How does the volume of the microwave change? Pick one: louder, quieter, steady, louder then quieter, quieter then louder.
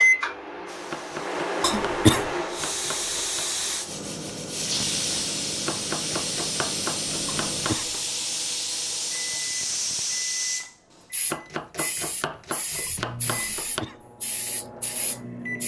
quieter.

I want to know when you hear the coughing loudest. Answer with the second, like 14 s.
2 s.